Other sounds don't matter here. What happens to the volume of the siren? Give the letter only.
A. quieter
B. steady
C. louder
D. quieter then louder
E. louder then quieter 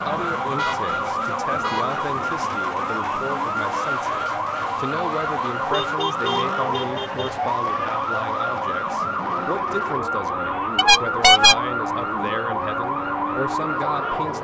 B.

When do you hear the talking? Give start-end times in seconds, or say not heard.
0.0-14.4.